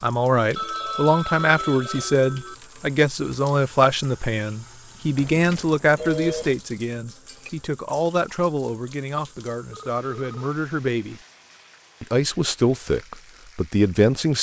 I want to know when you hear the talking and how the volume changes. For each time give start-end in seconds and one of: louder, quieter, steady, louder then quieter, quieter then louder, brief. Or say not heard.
0.0-11.2 quieter
12.0-14.3 brief.